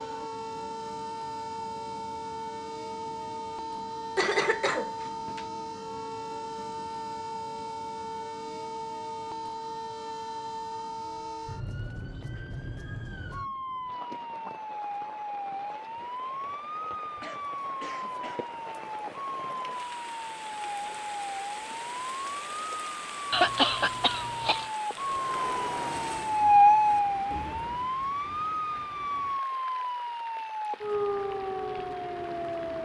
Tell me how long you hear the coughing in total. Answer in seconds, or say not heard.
4 s.